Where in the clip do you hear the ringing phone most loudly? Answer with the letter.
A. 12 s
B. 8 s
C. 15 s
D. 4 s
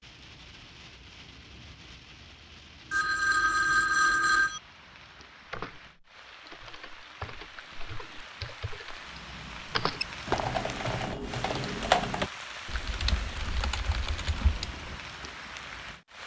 D.